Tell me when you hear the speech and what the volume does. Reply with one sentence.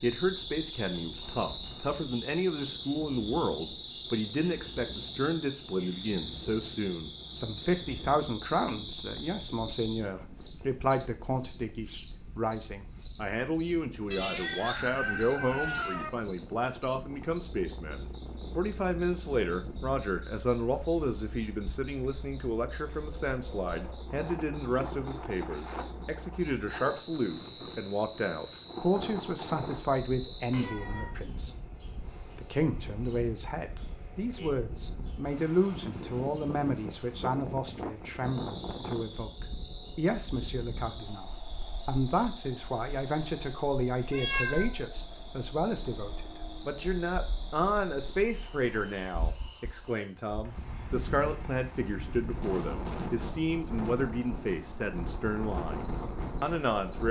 You can hear the speech from 0.0 to 57.0 s, at a steady volume.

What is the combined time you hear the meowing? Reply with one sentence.
You can hear the meowing for 3 seconds altogether.